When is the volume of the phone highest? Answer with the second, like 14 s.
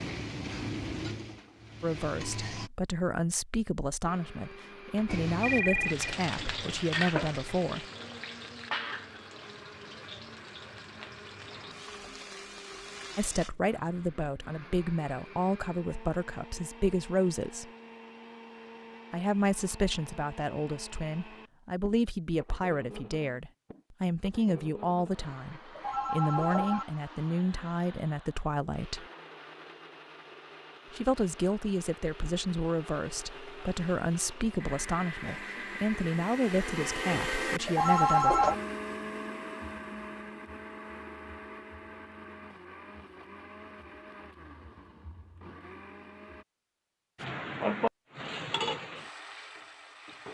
38 s.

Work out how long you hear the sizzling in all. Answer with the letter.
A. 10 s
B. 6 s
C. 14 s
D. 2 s
C.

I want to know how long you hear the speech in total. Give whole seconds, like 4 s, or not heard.
28 s.